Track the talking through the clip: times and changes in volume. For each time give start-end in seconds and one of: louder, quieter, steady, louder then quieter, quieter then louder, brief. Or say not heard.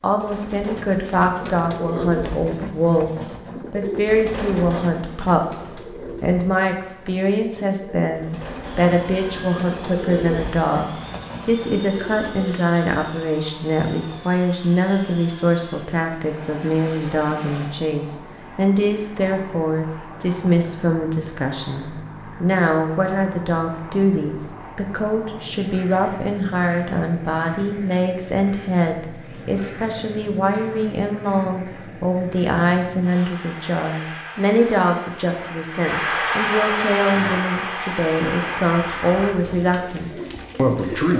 0.0-41.1 steady.